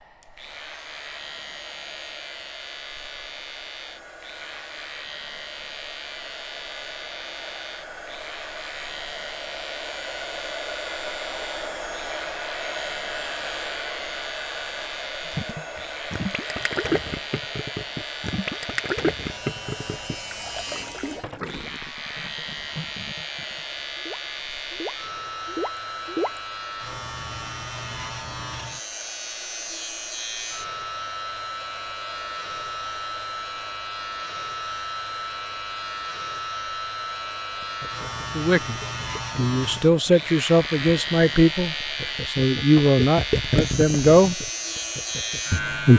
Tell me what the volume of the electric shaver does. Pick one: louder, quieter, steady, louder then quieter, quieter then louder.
louder.